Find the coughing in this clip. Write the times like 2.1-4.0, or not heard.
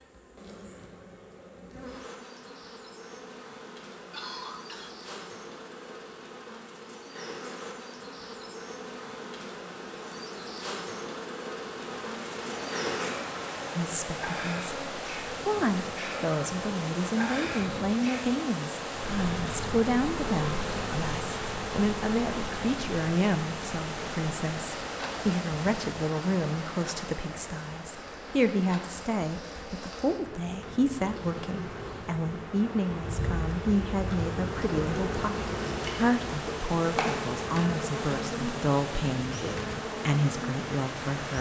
4.1-5.0.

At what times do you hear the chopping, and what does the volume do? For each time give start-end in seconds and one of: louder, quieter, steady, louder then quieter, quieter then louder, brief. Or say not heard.
not heard.